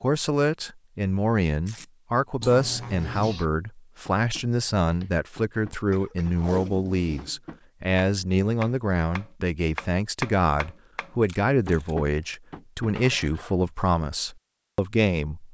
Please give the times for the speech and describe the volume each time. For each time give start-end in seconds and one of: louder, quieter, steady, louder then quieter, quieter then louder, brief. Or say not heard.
0.0-15.4 steady.